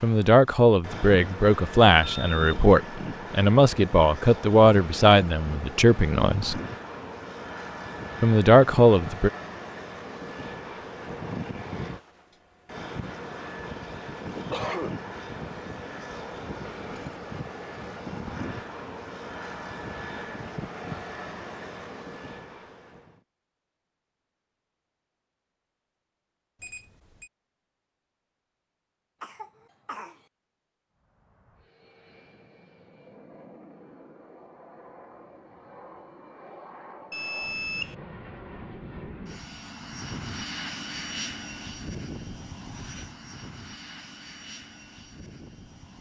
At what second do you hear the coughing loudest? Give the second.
15 s.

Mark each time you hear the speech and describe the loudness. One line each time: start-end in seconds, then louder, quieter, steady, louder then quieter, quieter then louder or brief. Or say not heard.
0.0-6.6 steady
8.2-9.3 brief.